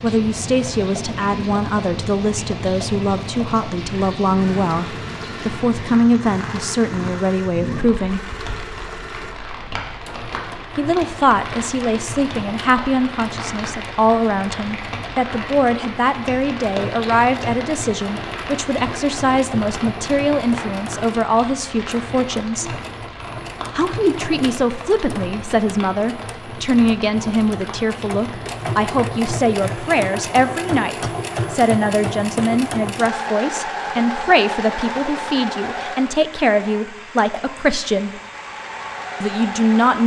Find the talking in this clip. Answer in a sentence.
You can hear the talking from 0.0 to 8.3 s, from 10.8 to 22.8 s, from 23.8 to 38.2 s and from 39.2 to 40.0 s.